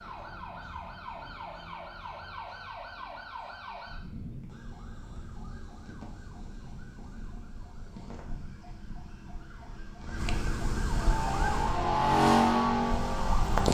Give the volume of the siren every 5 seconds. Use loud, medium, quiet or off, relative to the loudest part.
medium, quiet, loud.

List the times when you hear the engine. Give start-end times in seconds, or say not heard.
10.9-13.6.